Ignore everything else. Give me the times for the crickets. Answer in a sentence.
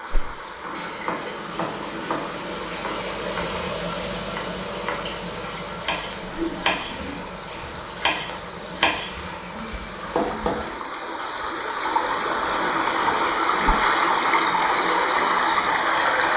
You can hear the crickets from 0.0 to 10.4 s.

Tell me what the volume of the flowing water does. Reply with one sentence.
The loudness of the flowing water goes up.